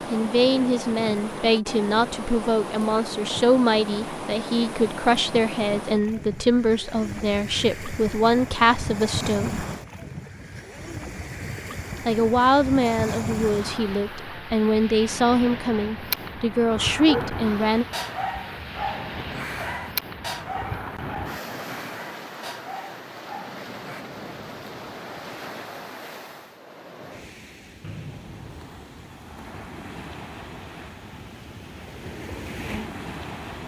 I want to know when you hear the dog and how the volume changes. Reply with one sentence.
You can hear the dog from 17.1 to 24.1 s, getting quieter.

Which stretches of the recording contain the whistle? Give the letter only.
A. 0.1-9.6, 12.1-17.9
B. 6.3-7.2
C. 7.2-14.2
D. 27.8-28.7
D.